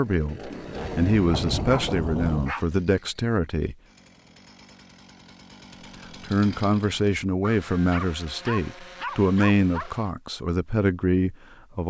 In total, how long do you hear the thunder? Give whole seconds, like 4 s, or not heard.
2 s.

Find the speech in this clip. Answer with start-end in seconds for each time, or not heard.
0.0-3.8, 6.2-11.8.